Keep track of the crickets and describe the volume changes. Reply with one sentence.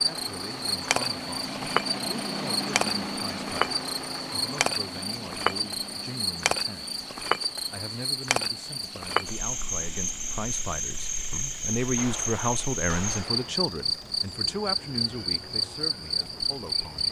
The volume of the crickets stays about the same.